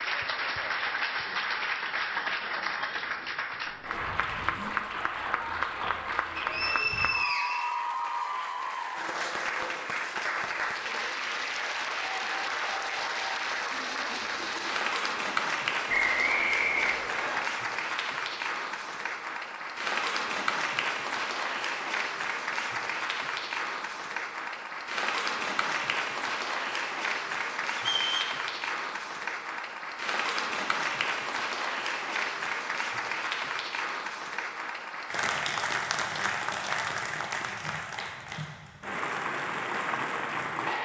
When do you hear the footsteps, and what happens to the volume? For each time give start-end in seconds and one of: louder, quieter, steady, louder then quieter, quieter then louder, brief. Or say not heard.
not heard.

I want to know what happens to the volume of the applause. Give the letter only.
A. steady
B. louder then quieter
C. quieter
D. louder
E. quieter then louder
A.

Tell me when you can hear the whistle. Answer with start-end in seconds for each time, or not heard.
6.3-7.8, 15.8-17.4, 27.8-28.4.